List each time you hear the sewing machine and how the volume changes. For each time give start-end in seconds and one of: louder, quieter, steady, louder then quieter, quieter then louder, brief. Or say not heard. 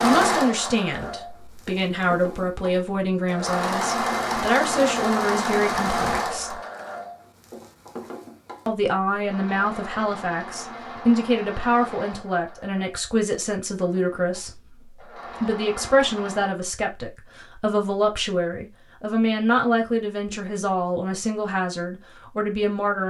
0.0-16.6 louder then quieter.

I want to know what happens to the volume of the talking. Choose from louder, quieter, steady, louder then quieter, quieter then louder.
steady.